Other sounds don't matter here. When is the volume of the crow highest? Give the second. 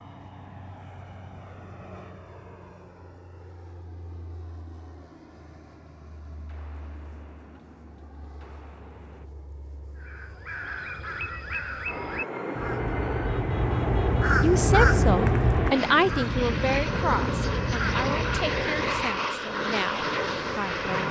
15 s.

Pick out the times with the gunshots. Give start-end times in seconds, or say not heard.
5.3-9.3.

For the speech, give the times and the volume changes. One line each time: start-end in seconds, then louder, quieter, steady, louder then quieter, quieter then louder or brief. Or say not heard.
14.4-21.0 quieter.